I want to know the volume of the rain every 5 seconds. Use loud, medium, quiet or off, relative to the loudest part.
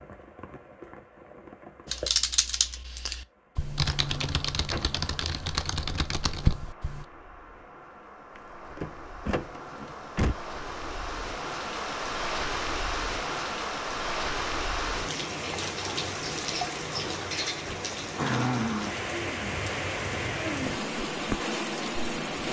quiet, quiet, loud, loud, loud.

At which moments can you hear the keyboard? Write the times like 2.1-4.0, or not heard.
1.9-7.0.